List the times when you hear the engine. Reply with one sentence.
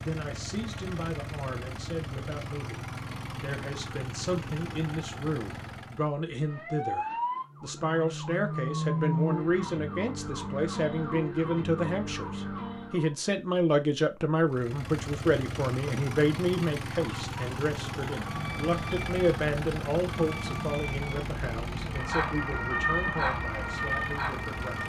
The engine can be heard from 0.0 to 6.1 s and from 14.4 to 24.8 s.